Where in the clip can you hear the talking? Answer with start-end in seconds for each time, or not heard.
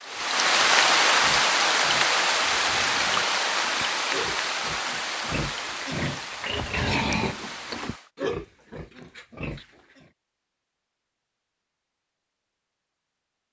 not heard.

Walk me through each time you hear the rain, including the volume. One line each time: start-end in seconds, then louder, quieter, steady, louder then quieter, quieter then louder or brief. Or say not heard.
0.0-8.1 quieter.